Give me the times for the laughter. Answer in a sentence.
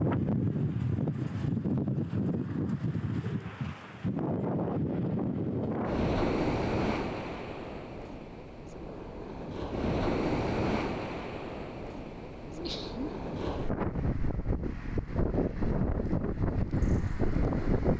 You can hear the laughter from 12.4 to 13.2 s.